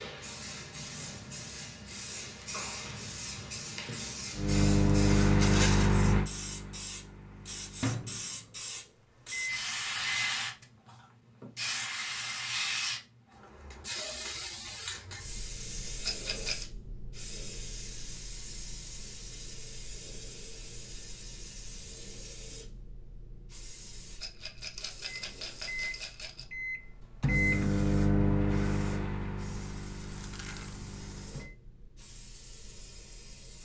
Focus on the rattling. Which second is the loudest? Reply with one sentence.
The volume of the rattling peaks at 6 seconds.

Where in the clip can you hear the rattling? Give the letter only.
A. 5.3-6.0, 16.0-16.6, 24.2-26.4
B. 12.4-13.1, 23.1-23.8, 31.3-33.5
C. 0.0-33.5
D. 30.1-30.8
A.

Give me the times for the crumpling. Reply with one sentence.
The crumpling can be heard from 30.1 to 30.8 s.